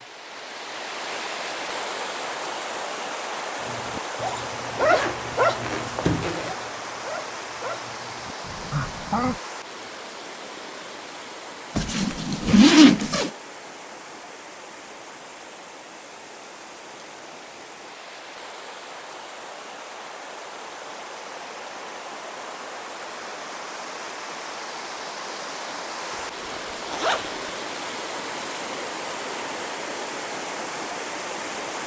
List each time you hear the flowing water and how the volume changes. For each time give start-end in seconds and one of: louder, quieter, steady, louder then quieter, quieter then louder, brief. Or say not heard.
0.0-31.8 quieter then louder.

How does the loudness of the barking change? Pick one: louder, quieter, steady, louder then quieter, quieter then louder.
quieter then louder.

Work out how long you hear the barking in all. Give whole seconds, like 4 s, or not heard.
6 s.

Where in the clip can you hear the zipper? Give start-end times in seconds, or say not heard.
4.8-6.5, 11.8-13.3, 26.1-27.4.